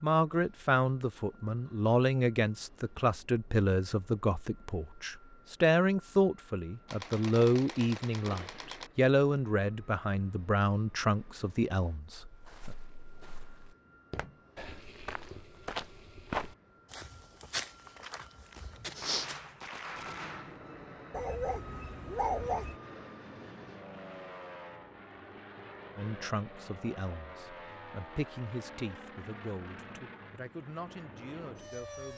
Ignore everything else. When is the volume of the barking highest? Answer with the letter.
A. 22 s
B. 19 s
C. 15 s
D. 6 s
A.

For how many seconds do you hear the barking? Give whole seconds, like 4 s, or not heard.
2 s.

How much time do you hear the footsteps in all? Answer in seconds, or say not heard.
7 s.